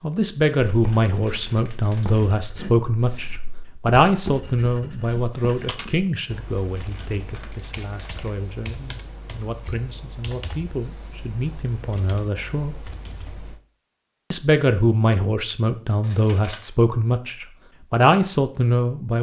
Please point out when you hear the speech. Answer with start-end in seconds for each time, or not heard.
0.0-12.8, 14.3-19.1.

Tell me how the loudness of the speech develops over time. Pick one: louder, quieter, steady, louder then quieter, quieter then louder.
quieter then louder.